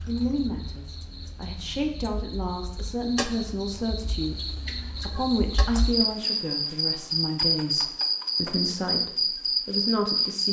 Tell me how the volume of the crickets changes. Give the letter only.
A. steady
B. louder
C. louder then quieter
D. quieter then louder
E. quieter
B.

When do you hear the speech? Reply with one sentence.
The speech can be heard from 0.1 to 10.4 s.